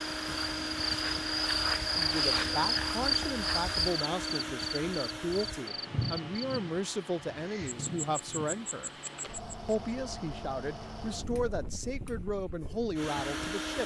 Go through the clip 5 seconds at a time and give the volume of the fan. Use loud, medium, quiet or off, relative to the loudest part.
loud, medium, loud.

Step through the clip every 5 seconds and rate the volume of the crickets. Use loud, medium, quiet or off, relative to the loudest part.
loud, medium, off.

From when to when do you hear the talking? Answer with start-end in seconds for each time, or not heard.
1.9-8.9, 9.7-13.8.